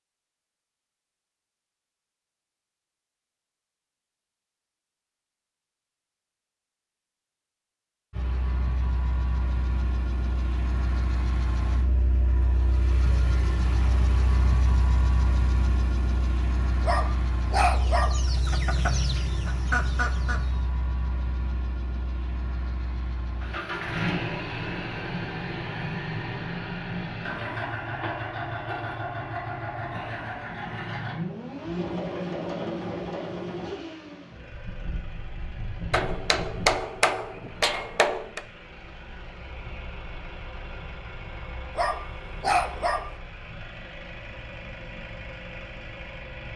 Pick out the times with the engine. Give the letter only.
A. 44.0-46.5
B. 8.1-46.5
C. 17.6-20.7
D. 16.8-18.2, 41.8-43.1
B.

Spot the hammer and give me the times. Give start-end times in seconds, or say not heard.
35.9-38.4.